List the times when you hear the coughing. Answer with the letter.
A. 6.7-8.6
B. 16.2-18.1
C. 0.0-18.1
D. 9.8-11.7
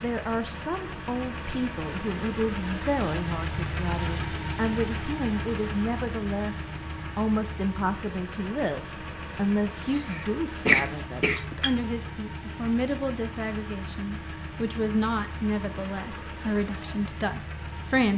D.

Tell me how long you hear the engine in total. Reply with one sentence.
The engine can be heard for 18 seconds in total.